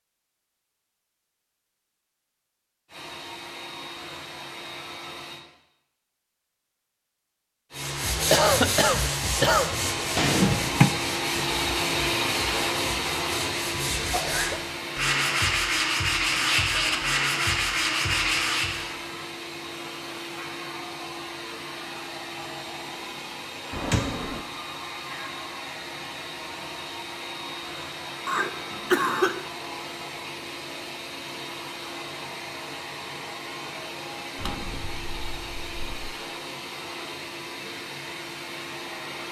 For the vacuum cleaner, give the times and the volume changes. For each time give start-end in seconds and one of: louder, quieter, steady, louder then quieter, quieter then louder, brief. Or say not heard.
2.9-5.5 brief
7.7-39.2 quieter.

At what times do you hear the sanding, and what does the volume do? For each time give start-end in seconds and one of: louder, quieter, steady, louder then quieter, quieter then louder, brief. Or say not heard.
7.8-18.9 quieter then louder.